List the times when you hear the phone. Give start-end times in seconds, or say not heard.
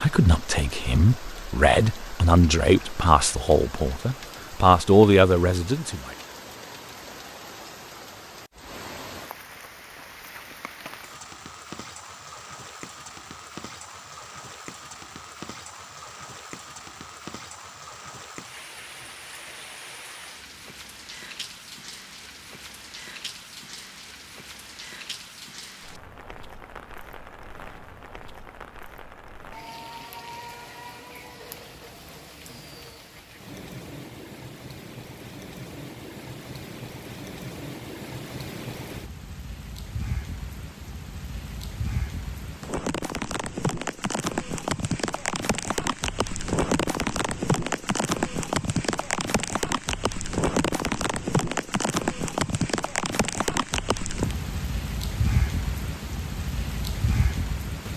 not heard.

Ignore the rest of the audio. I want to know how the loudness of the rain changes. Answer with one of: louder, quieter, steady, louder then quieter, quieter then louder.
louder.